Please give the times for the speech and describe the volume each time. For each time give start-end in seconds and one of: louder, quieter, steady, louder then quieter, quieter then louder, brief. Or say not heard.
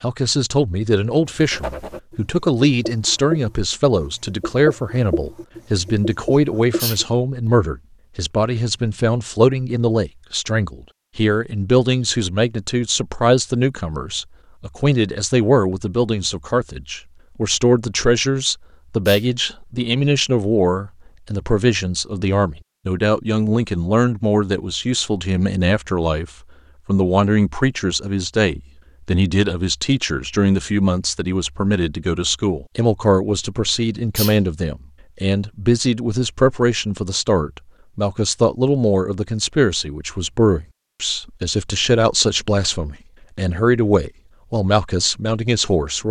0.0-46.0 steady.